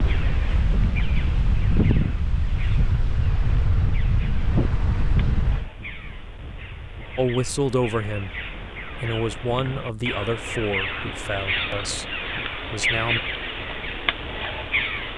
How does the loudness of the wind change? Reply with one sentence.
The loudness of the wind goes down.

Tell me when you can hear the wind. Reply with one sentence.
The wind can be heard from 0.0 to 15.1 s.